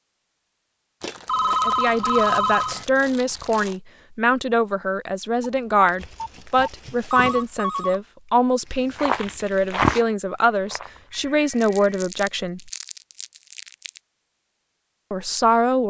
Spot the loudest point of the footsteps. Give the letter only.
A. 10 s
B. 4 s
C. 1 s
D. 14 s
A.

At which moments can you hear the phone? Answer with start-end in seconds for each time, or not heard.
1.2-2.9, 5.4-8.0, 10.9-12.1.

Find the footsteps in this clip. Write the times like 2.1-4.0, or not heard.
8.9-11.4.